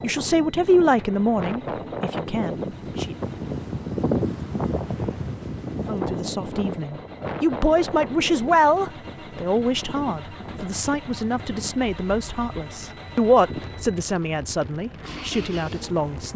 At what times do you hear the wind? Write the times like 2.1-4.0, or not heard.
0.0-16.3.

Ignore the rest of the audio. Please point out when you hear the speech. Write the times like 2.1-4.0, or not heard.
0.0-3.1, 5.8-16.3.